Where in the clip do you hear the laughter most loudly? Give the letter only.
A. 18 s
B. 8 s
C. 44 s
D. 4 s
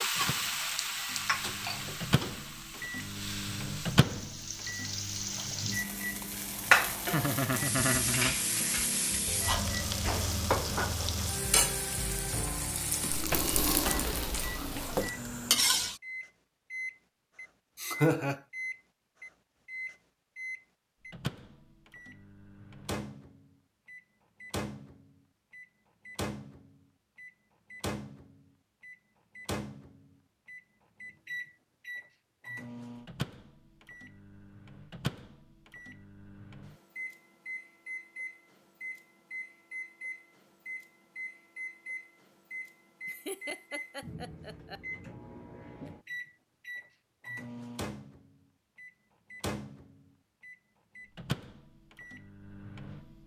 A.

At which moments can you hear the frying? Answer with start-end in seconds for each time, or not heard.
0.0-16.0.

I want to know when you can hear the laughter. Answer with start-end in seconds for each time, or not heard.
7.1-8.3, 17.8-18.4, 43.0-44.8.